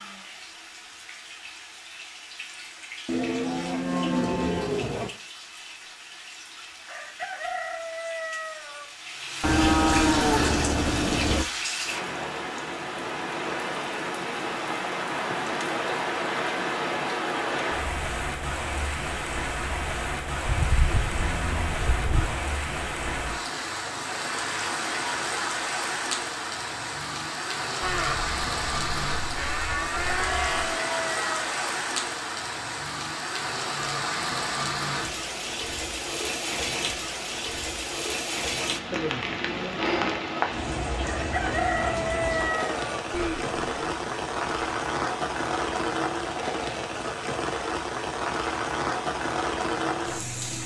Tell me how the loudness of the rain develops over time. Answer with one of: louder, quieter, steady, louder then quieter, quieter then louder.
louder.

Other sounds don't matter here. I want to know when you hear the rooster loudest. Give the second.
42 s.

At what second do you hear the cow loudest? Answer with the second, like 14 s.
10 s.